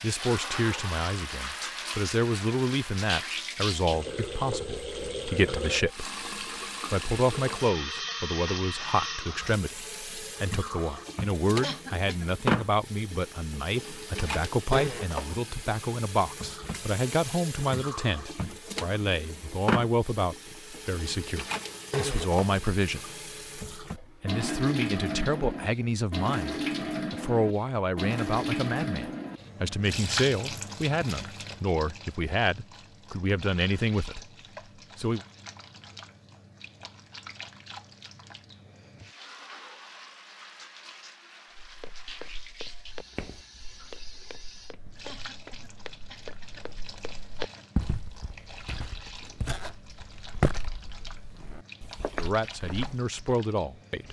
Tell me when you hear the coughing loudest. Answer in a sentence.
The loudest moment of the coughing is at 12 seconds.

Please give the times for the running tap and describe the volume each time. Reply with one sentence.
You can hear the running tap from 0.0 to 54.0 s, getting quieter.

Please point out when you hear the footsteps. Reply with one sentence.
The footsteps can be heard from 41.6 to 53.1 s.